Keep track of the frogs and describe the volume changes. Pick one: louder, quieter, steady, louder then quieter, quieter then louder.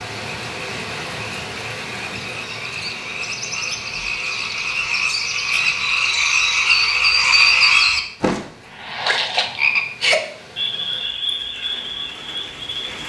louder then quieter.